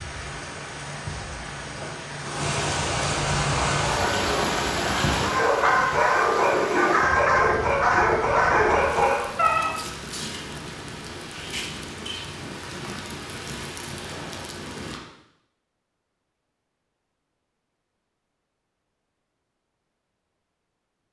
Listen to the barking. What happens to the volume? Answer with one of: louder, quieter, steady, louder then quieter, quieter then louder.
louder.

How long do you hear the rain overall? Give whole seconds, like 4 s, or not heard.
15 s.